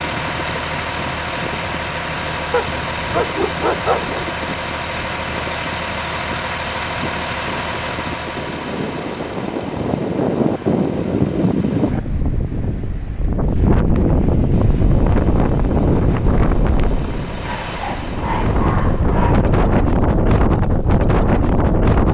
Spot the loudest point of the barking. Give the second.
4 s.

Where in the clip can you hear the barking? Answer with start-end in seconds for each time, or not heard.
2.5-4.3, 17.4-19.6.